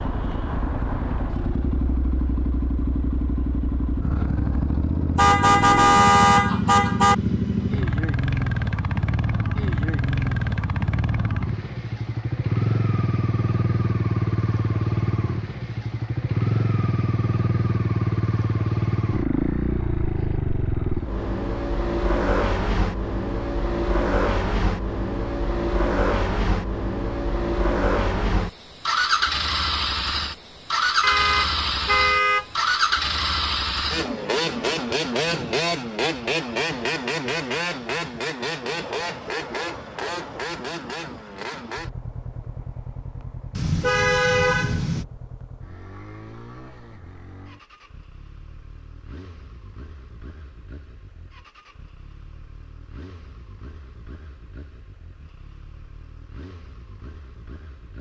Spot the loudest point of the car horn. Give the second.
6 s.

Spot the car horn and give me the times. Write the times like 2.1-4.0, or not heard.
5.2-7.2, 31.0-32.5, 43.5-45.0.